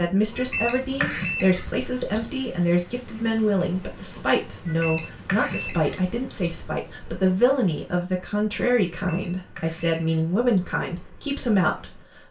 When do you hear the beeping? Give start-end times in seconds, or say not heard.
0.3-2.3, 4.7-6.5, 9.1-10.8.